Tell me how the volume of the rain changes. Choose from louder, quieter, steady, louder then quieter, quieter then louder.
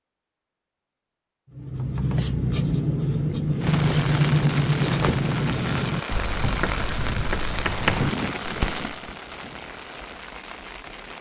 quieter.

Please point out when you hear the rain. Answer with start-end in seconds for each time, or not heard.
3.6-11.1.